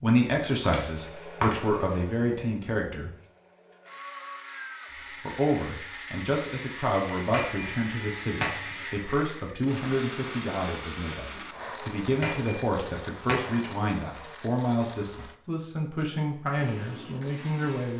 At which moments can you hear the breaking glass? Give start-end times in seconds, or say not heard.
0.6-1.6, 7.3-8.8, 12.2-13.7.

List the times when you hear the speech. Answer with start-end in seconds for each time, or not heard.
0.0-3.1, 5.2-17.9.